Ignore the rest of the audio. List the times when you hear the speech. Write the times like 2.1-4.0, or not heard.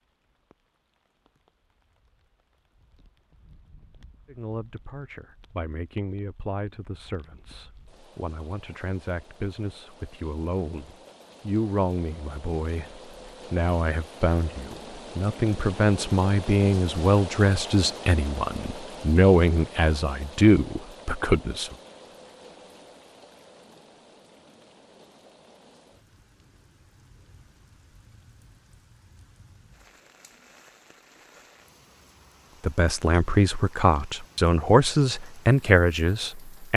4.2-21.8, 32.6-36.7.